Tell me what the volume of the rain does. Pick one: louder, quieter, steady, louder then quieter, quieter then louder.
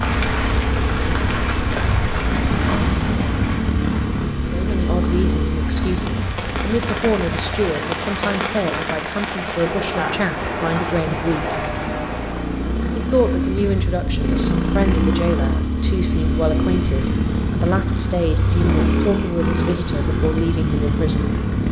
quieter then louder.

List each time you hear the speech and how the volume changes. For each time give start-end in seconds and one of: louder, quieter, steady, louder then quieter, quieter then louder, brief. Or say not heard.
4.4-11.7 steady
12.9-21.4 steady.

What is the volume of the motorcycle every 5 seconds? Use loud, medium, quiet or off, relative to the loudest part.
loud, medium, loud, loud, loud.